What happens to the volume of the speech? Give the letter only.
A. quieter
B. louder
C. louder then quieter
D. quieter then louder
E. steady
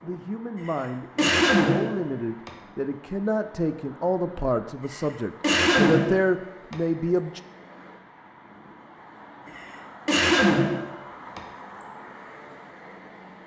B.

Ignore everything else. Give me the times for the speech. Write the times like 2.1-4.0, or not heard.
0.0-7.4.